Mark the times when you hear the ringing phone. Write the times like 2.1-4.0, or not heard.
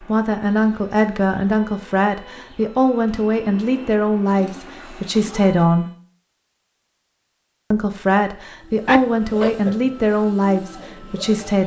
8.8-9.6.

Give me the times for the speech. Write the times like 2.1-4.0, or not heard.
0.0-5.9, 7.7-11.6.